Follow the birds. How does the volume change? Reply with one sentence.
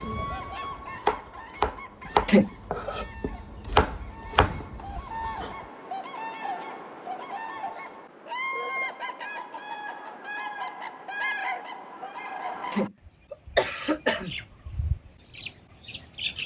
The loudness of the birds goes up, then down.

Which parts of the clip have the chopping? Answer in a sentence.
You can hear the chopping from 0.0 to 5.5 s.